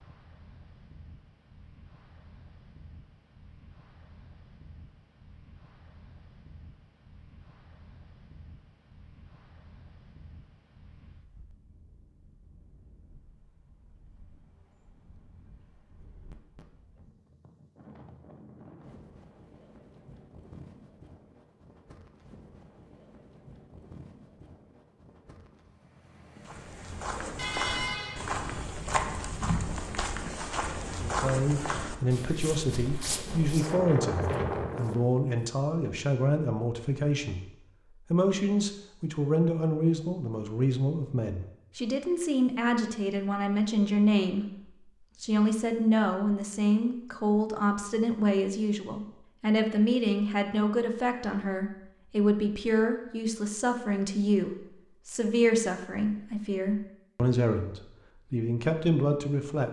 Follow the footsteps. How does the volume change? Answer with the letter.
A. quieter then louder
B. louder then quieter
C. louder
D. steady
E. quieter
E.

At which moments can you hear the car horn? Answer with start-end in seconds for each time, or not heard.
27.4-28.6.